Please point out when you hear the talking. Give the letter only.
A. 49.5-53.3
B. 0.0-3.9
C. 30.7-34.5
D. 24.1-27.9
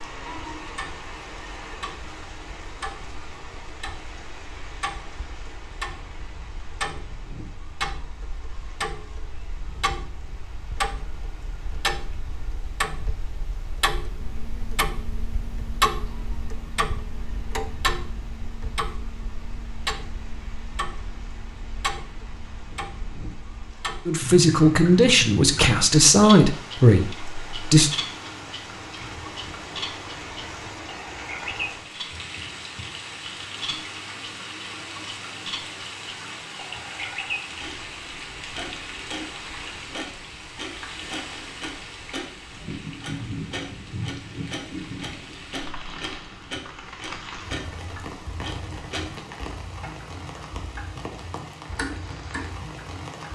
D.